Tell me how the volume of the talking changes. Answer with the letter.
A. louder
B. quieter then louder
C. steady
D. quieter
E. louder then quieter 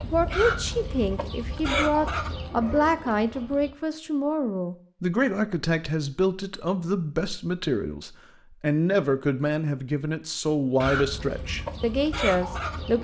C.